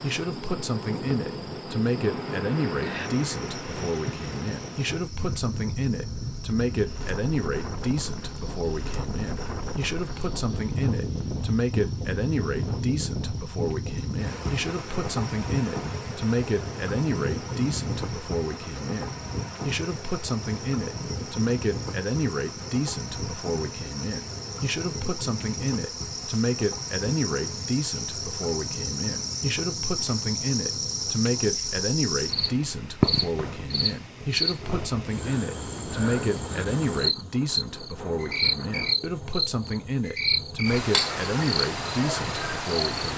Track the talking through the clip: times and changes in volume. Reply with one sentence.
The talking can be heard from 0.0 to 43.1 s, at a steady volume.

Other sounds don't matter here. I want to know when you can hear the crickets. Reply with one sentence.
You can hear the crickets from 0.0 to 43.1 s.